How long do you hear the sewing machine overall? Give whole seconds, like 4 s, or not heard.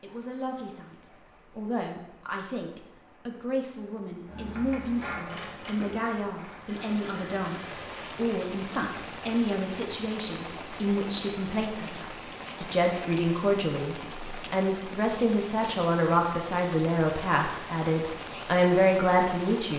4 s.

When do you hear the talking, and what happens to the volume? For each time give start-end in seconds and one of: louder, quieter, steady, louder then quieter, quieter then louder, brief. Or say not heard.
0.0-19.7 louder.